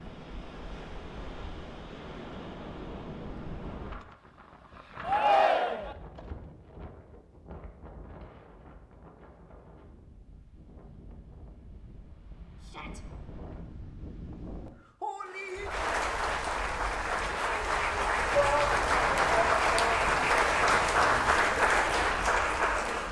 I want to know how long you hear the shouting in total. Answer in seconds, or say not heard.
3 s.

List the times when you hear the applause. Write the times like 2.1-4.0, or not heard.
15.2-23.0.